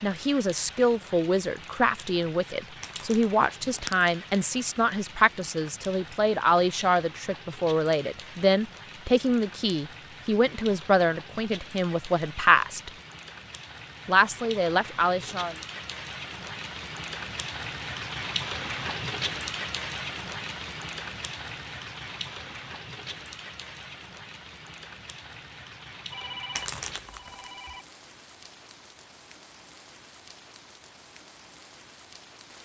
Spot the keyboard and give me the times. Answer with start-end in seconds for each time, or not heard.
not heard.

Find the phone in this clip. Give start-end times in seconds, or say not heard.
26.1-27.9.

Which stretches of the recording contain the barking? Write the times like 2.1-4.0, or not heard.
not heard.